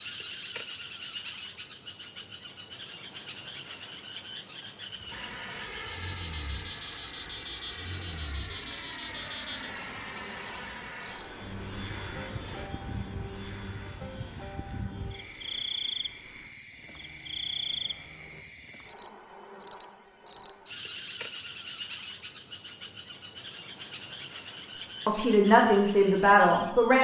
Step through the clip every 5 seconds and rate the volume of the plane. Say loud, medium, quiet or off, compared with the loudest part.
off, loud, loud, quiet, off, off.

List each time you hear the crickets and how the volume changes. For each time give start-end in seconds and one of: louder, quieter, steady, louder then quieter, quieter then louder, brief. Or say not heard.
0.0-26.9 steady.